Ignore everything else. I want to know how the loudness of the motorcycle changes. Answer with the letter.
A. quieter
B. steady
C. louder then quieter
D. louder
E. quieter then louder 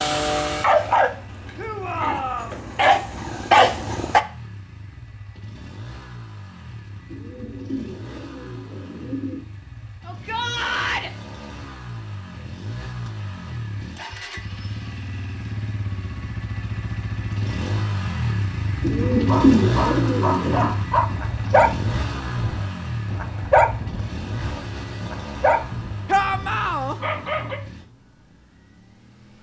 C.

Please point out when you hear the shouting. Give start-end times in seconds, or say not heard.
1.6-2.6, 10.1-11.1, 26.1-26.9.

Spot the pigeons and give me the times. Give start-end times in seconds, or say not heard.
7.0-9.4, 18.8-20.8.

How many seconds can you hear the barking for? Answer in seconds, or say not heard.
13 s.